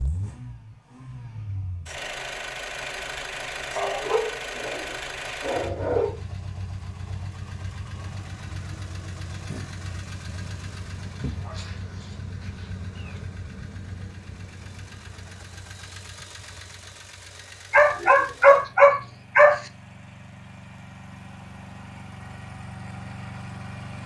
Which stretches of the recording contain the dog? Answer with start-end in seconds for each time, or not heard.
3.8-6.2, 11.2-13.2, 17.7-19.6.